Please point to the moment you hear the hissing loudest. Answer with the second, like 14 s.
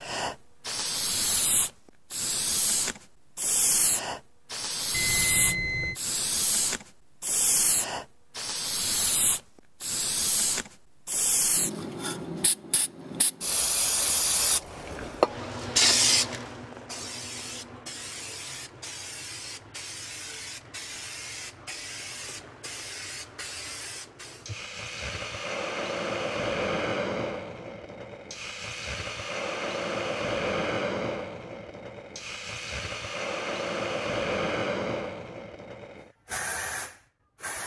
16 s.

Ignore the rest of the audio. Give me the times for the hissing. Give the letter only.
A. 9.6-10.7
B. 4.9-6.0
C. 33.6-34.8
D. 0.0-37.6
D.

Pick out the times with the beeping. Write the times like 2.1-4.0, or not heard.
4.9-6.0.